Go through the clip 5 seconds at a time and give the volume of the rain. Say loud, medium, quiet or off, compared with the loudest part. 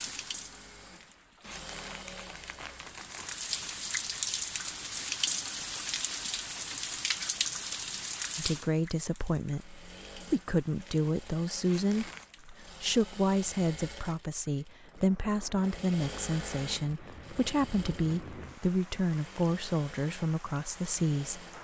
loud, loud, quiet, quiet, quiet.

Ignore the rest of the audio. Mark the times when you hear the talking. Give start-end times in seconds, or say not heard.
8.3-21.4.